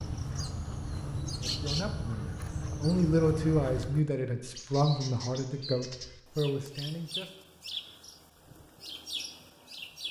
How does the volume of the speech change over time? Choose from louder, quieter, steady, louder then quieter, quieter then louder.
louder then quieter.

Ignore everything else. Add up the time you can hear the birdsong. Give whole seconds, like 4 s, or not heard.
10 s.